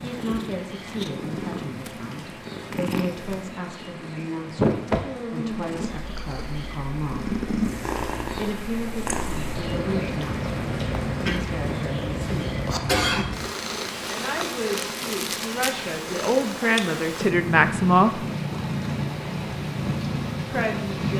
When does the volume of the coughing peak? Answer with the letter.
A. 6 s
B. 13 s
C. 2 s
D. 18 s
B.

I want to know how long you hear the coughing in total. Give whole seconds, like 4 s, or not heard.
2 s.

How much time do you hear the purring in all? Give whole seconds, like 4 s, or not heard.
21 s.